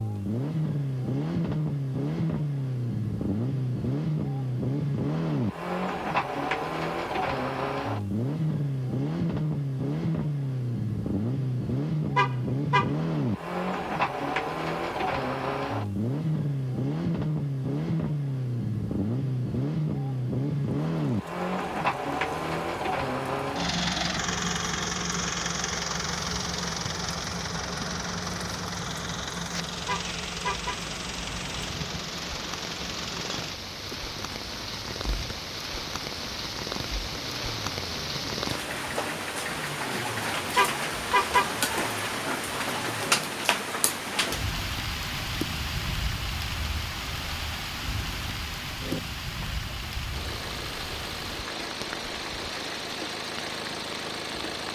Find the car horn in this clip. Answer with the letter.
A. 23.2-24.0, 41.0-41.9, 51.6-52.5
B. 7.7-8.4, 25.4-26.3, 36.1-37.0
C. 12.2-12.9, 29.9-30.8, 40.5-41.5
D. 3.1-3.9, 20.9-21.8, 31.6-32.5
C.